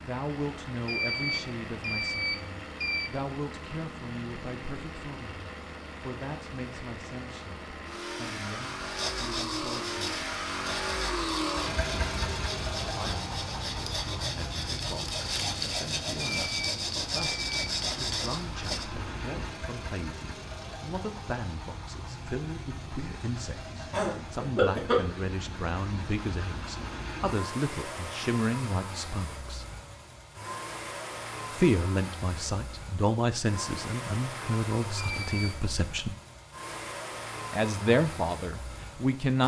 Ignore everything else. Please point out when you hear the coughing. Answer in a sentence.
The coughing can be heard from 23.9 to 25.0 s.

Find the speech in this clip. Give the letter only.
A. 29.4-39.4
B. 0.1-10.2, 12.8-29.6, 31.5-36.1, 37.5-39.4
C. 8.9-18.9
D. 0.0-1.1
B.